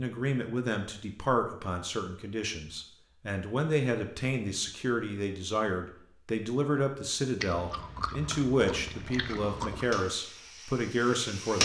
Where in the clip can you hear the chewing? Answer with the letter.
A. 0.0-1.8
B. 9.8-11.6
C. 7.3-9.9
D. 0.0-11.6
C.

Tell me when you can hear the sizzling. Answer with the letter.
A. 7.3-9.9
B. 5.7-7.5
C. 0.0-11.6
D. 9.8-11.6
D.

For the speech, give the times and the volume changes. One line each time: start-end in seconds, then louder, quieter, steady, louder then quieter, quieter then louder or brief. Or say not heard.
0.0-11.6 steady.